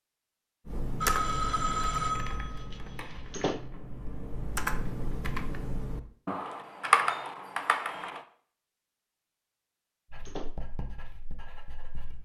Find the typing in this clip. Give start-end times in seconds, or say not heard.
0.7-8.2.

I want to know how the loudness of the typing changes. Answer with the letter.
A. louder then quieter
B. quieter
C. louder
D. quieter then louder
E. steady
D.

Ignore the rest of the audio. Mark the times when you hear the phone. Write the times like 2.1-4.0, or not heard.
1.0-3.5.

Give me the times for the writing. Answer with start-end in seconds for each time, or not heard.
10.1-12.2.